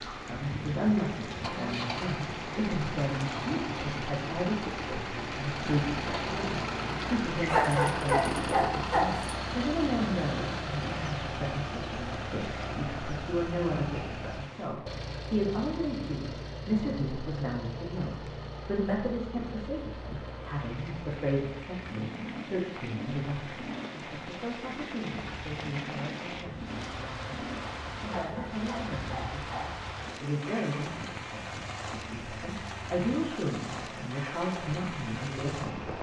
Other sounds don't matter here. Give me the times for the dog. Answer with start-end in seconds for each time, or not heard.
7.5-9.3, 28.1-29.7.